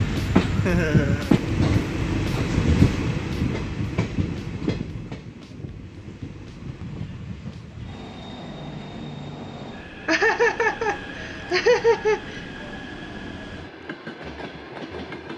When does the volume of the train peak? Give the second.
1 s.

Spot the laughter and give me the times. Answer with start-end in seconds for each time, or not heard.
0.6-1.4, 10.1-12.4.